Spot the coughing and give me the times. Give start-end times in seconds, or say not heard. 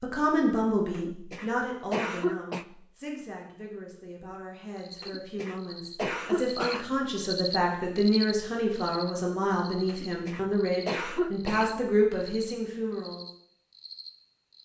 0.9-2.6, 5.0-7.0, 9.8-11.8.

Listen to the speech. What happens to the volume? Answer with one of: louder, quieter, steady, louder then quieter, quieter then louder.
quieter then louder.